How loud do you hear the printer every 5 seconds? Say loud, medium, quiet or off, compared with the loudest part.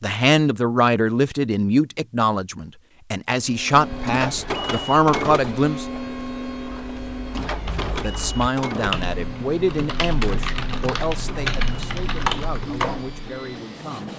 loud, loud, medium.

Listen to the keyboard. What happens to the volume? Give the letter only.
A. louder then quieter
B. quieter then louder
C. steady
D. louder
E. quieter
D.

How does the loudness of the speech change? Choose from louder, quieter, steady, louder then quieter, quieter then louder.
quieter.